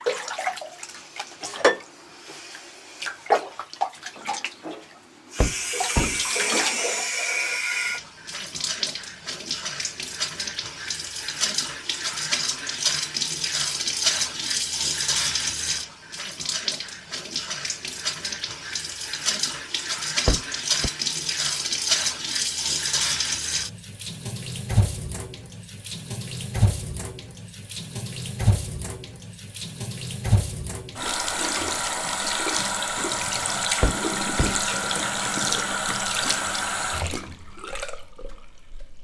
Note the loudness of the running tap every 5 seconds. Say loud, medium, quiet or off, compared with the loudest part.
loud, loud, loud, loud, loud, medium, loud, loud.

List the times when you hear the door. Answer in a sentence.
The door can be heard from 5.3 to 6.2 s, from 20.2 to 20.9 s and from 33.8 to 34.6 s.